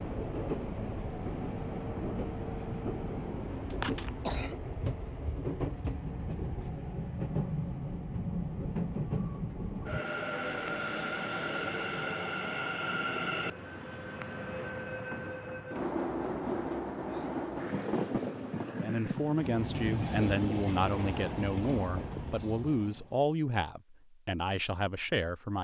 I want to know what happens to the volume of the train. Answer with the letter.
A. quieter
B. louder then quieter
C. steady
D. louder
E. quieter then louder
C.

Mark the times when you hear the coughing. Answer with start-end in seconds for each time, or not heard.
3.7-4.6.